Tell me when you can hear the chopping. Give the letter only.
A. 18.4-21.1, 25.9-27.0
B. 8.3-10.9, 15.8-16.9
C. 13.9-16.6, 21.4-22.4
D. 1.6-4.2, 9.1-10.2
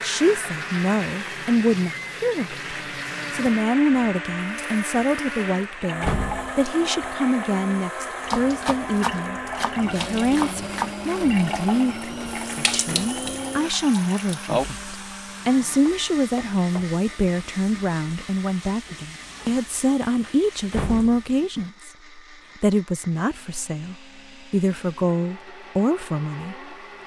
B.